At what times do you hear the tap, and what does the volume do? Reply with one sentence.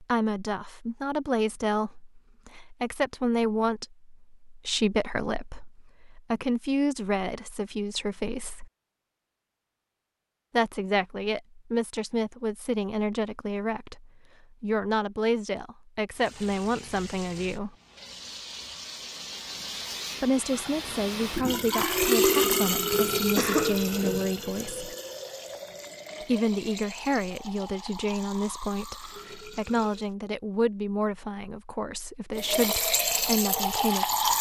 You can hear the tap from 16.1 to 30.1 s, getting louder then quieter; and briefly from 32.4 to 34.3 s.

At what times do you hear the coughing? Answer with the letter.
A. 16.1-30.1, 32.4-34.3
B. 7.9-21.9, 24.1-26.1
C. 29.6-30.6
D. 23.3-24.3
D.